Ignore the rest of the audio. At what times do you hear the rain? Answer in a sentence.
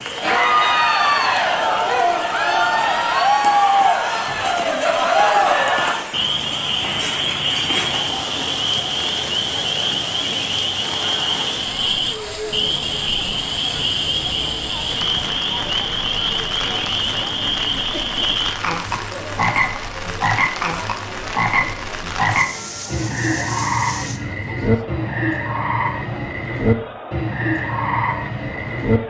You can hear the rain from 0.0 to 24.2 s.